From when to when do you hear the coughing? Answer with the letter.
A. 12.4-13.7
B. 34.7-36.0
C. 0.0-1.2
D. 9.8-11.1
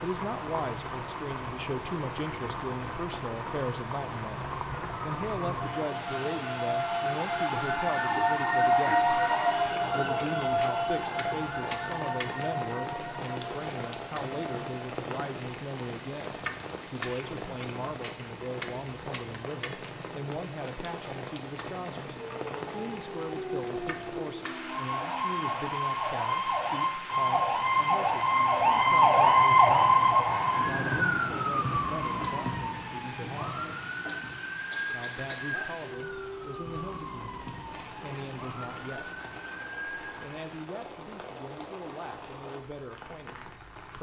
B.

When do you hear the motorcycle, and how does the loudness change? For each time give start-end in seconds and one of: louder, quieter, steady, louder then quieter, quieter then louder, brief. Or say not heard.
not heard.